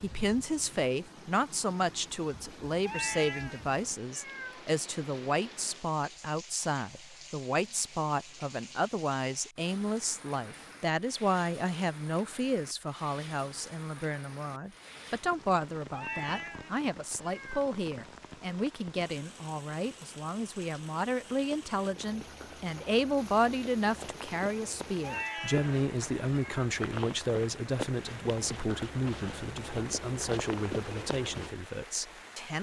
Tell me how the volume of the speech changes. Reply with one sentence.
The volume of the speech stays about the same.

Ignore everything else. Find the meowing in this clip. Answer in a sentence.
The meowing can be heard from 2.9 to 4.6 s, from 15.9 to 17.7 s and from 25.0 to 26.6 s.